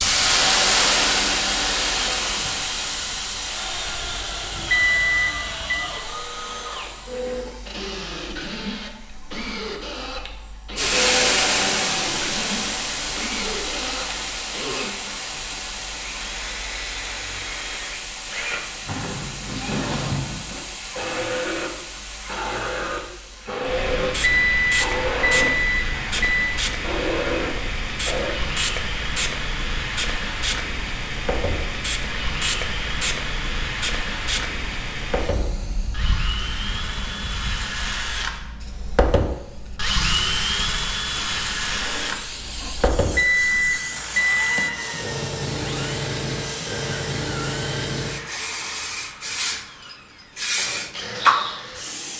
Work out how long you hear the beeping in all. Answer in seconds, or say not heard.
5 s.